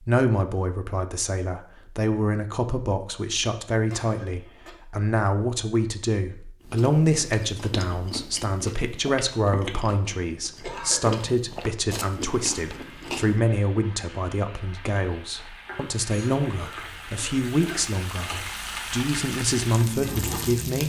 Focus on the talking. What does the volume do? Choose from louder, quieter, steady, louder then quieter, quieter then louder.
steady.